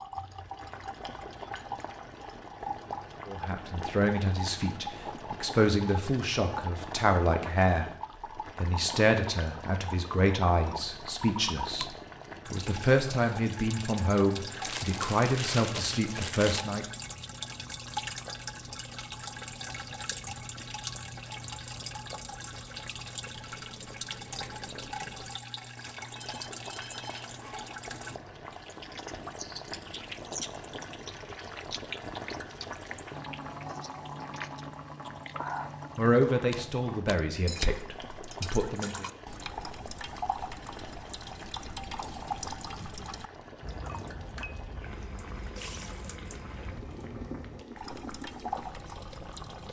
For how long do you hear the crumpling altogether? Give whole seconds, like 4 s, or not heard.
2 s.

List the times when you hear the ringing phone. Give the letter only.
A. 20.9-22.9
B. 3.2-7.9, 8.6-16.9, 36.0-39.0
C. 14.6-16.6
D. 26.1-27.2
D.